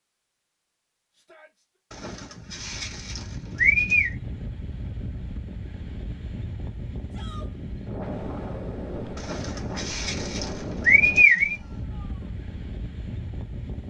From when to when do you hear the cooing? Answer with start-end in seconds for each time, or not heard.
1.9-4.2, 9.2-11.6.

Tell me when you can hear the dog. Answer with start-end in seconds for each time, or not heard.
not heard.